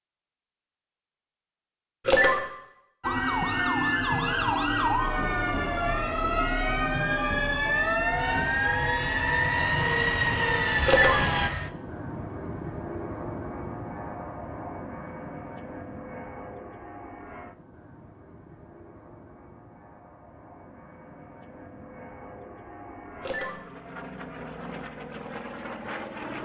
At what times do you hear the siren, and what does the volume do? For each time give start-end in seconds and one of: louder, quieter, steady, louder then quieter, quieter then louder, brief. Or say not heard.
3.0-11.5 steady.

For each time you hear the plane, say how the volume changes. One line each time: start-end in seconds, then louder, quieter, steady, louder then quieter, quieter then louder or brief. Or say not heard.
8.1-26.4 quieter then louder.